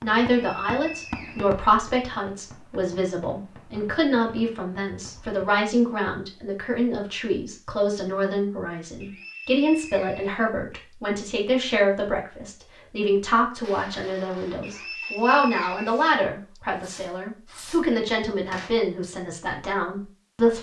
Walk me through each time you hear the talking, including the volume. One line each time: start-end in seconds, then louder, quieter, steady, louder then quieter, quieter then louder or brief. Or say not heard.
0.0-20.5 steady.